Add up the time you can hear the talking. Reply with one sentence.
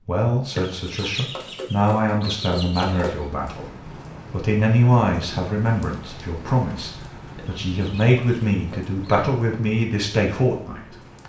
The talking can be heard for 11 seconds in total.